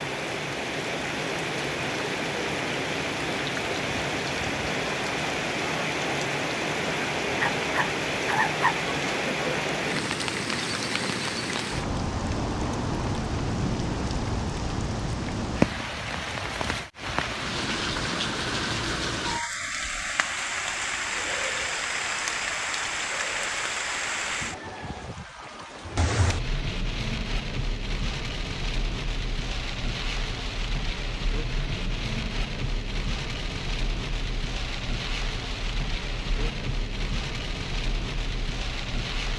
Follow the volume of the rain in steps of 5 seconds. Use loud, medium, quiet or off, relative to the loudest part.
loud, loud, loud, loud, loud, medium, medium, medium.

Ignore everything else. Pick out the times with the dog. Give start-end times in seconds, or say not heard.
7.3-8.8.